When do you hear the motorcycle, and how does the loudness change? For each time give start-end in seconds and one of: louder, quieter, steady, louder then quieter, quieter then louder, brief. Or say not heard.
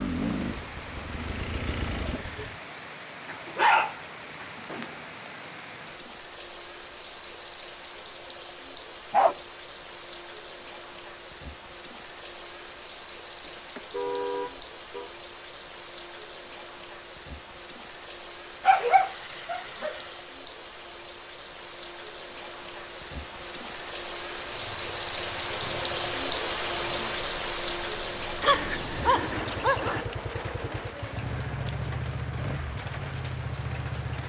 0.0-2.6 brief
24.5-34.2 louder.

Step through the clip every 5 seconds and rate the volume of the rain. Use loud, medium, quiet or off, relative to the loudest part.
medium, medium, medium, medium, medium, loud, medium.